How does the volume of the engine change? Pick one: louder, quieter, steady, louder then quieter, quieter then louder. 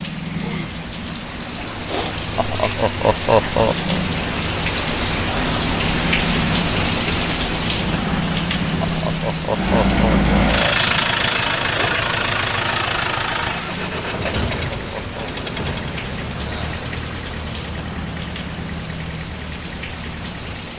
quieter.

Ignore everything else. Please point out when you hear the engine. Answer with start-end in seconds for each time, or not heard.
9.4-20.7.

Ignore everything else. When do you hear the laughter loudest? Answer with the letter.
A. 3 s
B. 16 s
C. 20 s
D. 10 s
A.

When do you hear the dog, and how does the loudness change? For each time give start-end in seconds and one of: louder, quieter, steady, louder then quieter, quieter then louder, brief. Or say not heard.
not heard.